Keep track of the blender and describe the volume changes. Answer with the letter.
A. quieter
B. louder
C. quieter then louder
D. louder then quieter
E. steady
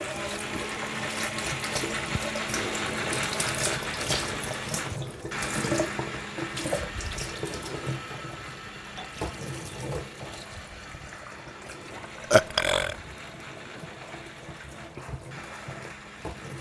A.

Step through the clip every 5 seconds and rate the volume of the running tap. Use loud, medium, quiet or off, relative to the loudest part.
loud, loud, medium, medium.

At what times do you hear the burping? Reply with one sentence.
The burping can be heard from 12.3 to 12.9 s.